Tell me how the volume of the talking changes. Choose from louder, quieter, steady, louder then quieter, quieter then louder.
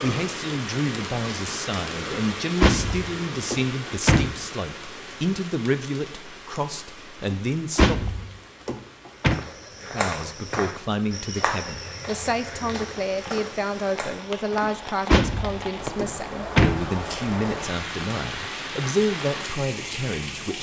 steady.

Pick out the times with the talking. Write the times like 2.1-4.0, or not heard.
0.0-8.2, 9.8-20.5.